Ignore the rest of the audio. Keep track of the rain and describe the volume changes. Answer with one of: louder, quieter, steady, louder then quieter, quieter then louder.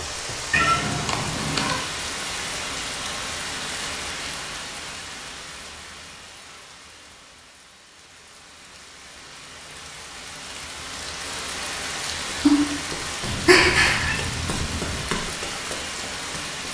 quieter then louder.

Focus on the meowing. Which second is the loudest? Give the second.
1 s.